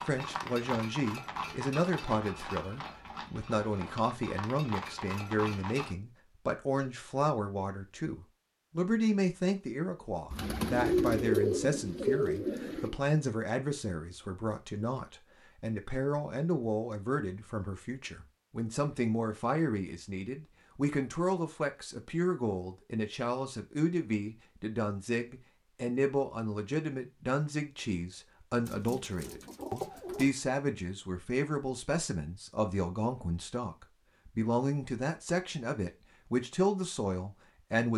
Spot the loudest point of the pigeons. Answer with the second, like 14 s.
11 s.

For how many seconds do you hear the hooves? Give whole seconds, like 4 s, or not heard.
6 s.